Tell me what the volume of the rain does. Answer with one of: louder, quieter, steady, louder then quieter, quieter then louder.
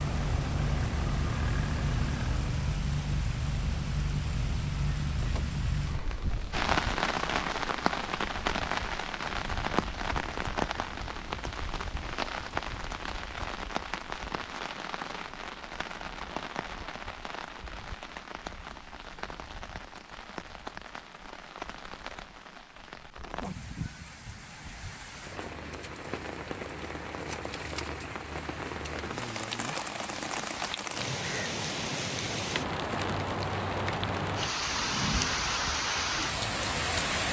quieter then louder.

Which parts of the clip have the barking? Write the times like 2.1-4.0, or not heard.
not heard.